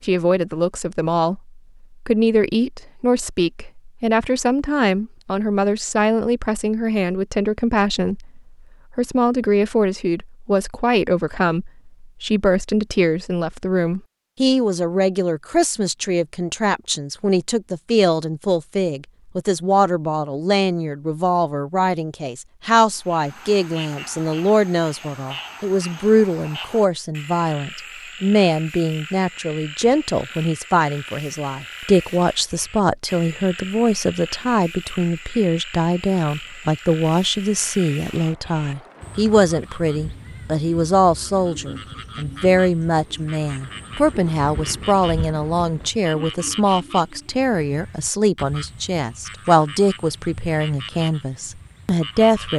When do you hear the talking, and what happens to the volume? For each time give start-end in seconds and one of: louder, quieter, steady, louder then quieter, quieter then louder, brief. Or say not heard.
0.0-52.5 steady.